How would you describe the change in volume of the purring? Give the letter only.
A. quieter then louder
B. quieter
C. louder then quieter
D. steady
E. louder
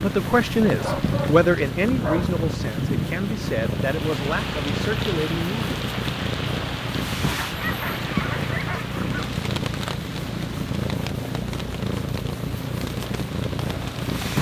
D.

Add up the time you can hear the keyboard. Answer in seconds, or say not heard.
not heard.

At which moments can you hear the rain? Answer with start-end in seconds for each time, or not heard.
0.0-14.3.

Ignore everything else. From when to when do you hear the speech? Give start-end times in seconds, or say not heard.
0.0-5.7.